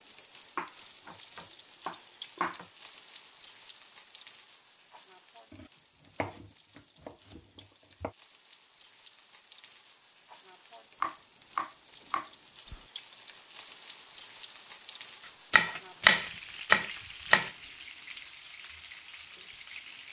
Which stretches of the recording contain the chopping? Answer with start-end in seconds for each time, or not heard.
0.6-2.6, 5.5-8.2, 11.0-12.8, 15.5-17.5.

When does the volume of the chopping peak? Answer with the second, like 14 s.
16 s.